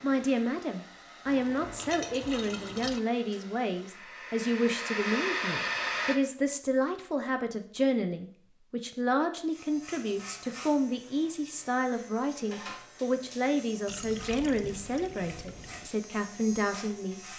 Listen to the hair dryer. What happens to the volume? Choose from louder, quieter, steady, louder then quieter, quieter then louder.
louder.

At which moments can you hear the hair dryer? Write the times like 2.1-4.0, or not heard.
0.0-6.2.